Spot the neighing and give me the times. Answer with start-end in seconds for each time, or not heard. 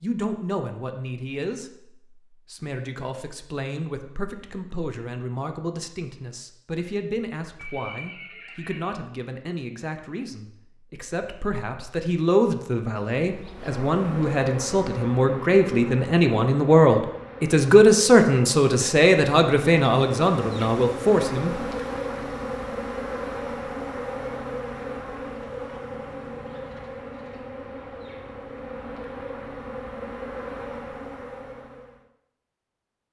7.5-8.9.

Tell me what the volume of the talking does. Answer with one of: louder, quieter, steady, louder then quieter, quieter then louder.
louder.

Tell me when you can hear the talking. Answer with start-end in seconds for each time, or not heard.
0.0-21.6.